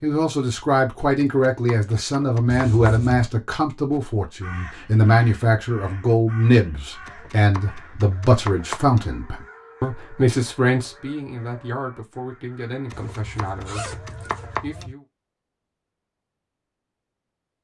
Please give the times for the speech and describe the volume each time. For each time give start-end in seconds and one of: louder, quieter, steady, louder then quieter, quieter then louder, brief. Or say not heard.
0.0-15.1 quieter.